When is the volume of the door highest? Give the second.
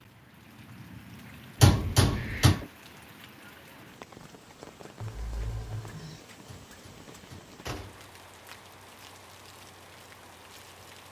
2 s.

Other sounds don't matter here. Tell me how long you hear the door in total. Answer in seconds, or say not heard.
3 s.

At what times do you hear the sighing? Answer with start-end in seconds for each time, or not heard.
5.0-6.2.